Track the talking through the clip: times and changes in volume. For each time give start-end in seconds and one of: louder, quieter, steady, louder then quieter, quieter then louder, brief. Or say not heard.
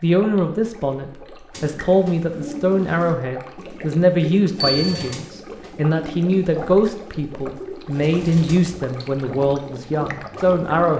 0.0-10.9 steady.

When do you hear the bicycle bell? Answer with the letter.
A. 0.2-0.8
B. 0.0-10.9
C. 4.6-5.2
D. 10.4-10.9
C.